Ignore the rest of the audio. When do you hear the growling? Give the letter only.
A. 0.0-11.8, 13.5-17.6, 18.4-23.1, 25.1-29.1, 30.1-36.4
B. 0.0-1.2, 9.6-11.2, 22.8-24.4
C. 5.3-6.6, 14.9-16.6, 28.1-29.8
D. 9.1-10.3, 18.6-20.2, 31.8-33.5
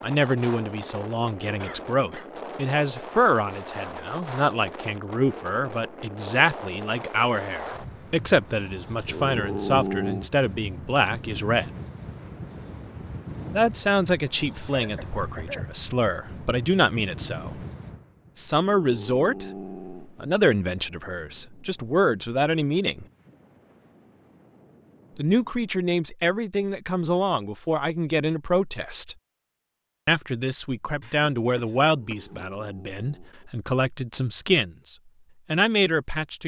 D.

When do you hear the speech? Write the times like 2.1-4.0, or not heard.
0.0-11.8, 13.5-17.6, 18.4-23.1, 25.1-29.1, 30.1-36.4.